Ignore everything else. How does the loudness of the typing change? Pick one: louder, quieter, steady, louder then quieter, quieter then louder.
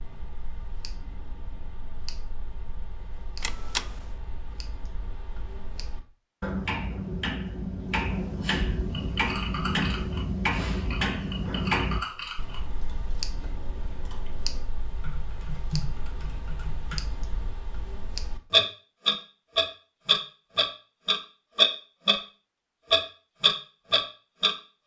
quieter then louder.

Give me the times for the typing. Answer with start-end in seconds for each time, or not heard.
8.9-17.0.